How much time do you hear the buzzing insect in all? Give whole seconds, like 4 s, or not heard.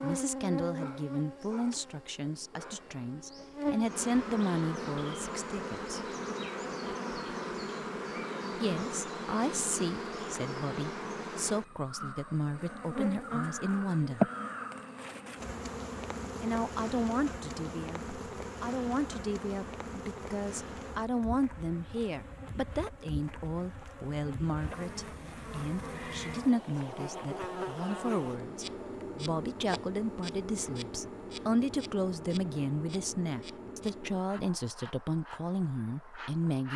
37 s.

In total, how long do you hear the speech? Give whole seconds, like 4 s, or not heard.
32 s.